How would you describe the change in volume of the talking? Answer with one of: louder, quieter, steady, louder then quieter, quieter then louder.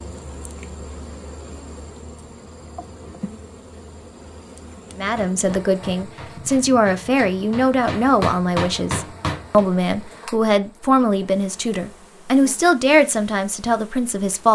steady.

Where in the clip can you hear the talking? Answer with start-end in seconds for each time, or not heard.
5.0-14.5.